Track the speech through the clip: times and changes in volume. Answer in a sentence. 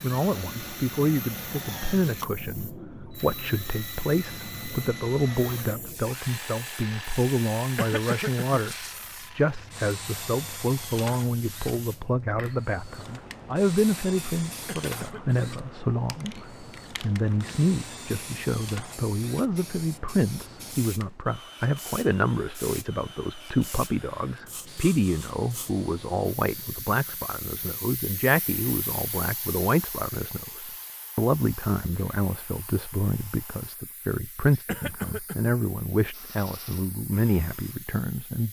You can hear the speech from 0.0 to 38.4 s, at a steady volume.